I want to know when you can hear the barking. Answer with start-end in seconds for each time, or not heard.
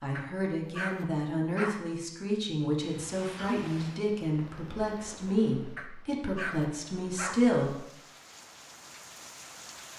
0.1-1.9, 5.8-7.5.